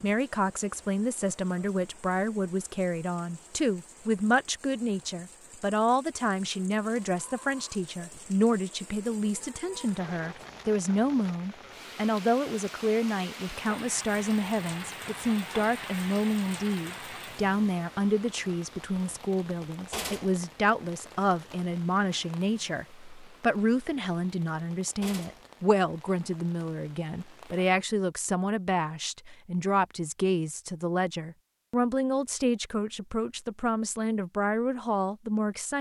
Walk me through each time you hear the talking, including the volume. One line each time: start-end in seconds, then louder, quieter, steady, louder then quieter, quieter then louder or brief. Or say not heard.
0.0-35.7 steady.